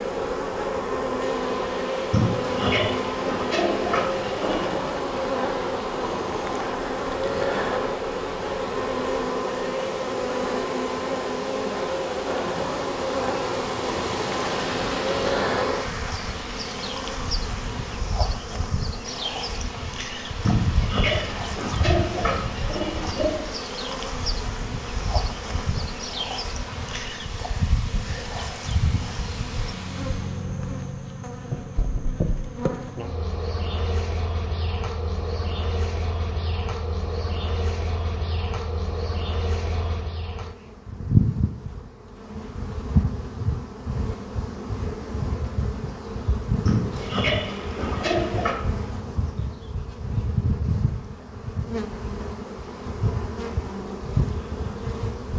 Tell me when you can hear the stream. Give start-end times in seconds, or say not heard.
0.0-30.5.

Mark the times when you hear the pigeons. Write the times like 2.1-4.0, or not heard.
2.1-4.8, 20.4-23.4, 46.6-48.5.